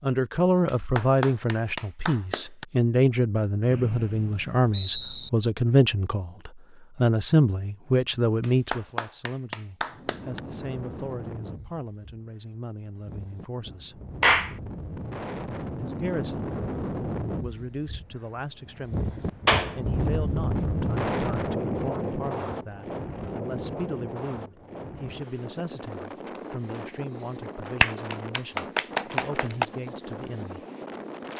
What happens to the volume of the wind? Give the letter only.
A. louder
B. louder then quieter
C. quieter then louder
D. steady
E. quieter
B.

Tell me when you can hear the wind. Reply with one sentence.
The wind can be heard from 9.8 to 31.3 s.